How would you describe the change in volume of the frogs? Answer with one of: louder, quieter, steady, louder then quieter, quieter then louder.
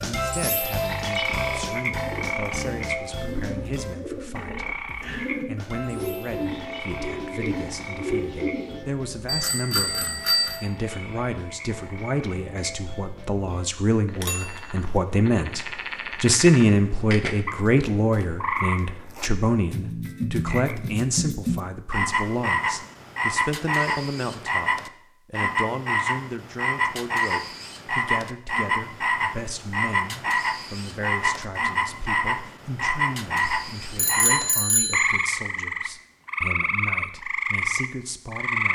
quieter then louder.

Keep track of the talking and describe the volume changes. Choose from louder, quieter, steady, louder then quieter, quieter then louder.
louder then quieter.